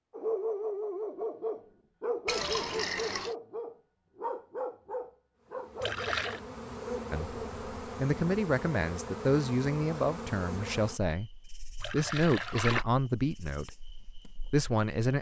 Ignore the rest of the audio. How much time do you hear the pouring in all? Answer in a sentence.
The pouring can be heard for 3 seconds in total.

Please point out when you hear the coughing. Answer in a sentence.
The coughing can't be heard in this clip.